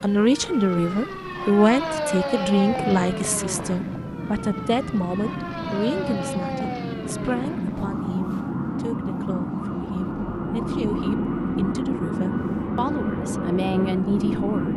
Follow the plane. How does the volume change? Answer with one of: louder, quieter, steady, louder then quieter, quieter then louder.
louder.